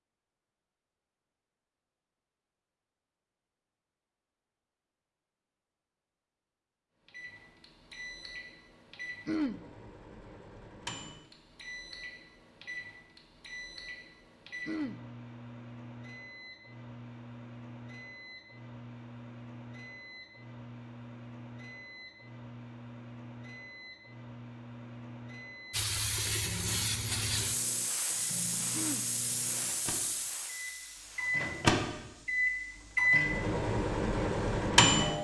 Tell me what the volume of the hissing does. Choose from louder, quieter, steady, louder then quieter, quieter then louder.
quieter.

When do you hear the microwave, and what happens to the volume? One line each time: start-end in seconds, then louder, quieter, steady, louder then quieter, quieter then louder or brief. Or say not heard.
7.0-35.1 louder.